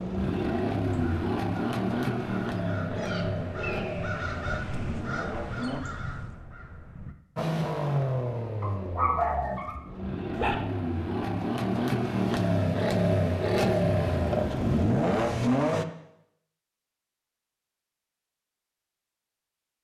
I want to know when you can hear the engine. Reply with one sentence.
You can hear the engine from 0.0 to 5.8 s and from 7.3 to 15.8 s.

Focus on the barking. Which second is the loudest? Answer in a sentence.
The loudest moment of the barking is at 9 seconds.